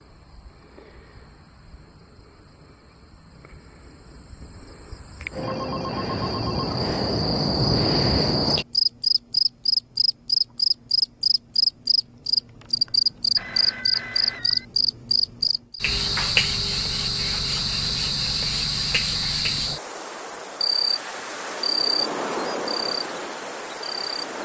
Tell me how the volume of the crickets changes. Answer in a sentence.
The volume of the crickets goes up, then down.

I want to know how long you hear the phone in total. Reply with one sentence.
You can hear the phone for 3 seconds altogether.